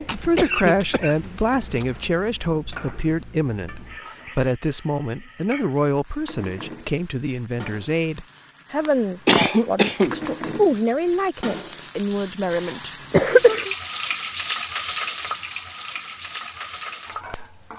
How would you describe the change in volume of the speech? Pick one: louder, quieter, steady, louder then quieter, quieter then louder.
steady.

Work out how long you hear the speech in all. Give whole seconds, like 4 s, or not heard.
14 s.